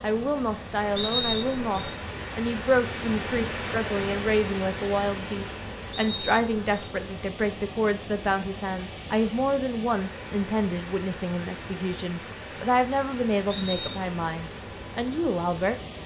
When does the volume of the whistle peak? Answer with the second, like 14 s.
1 s.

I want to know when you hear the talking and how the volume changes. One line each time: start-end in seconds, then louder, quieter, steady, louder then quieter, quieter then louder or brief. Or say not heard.
0.0-16.0 steady.